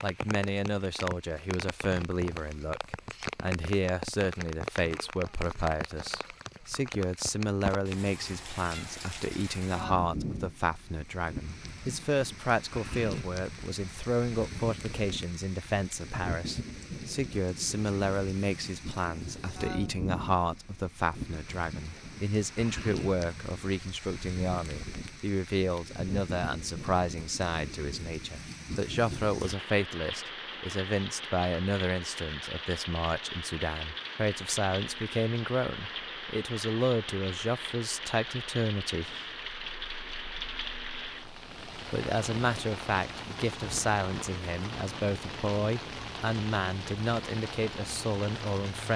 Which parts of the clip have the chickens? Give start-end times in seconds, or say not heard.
not heard.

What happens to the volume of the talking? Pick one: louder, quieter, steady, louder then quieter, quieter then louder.
steady.